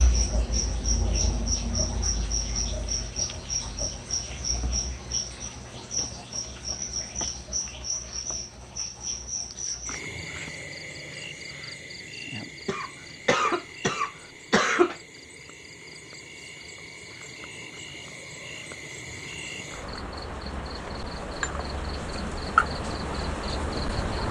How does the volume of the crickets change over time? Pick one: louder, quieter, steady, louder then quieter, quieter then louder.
quieter then louder.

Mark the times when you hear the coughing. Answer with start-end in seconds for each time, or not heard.
12.7-14.9.